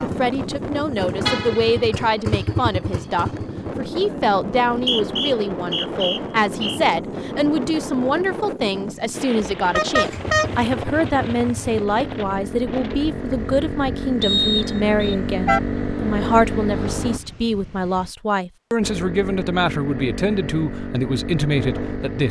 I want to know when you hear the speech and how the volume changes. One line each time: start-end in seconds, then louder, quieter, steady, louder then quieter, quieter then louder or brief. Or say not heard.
0.0-22.2 steady.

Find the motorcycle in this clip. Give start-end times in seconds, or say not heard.
0.0-3.9, 9.9-17.2, 18.8-22.2.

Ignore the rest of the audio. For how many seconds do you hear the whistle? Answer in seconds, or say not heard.
3 s.